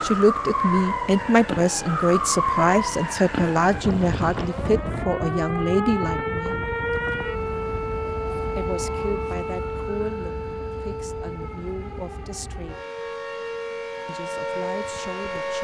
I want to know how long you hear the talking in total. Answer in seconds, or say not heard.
12 s.